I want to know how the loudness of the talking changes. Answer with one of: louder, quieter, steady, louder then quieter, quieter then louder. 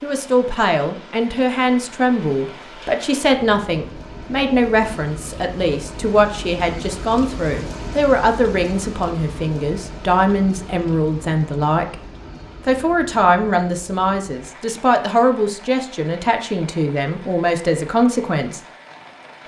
steady.